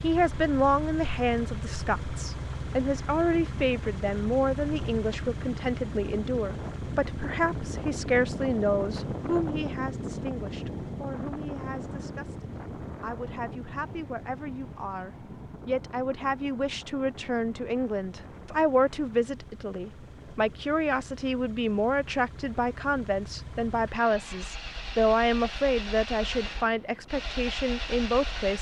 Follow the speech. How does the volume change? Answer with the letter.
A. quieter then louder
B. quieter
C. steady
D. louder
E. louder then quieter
A.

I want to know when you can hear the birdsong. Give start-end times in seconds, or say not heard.
not heard.